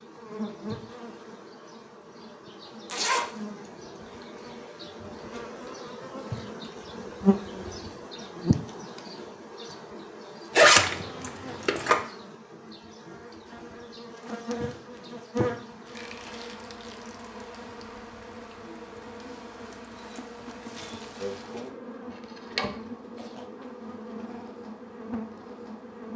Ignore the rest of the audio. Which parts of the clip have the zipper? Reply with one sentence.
You can hear the zipper from 2.9 to 3.7 s, from 10.6 to 12.0 s and from 22.3 to 23.4 s.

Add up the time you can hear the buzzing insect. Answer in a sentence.
You can hear the buzzing insect for 26 seconds altogether.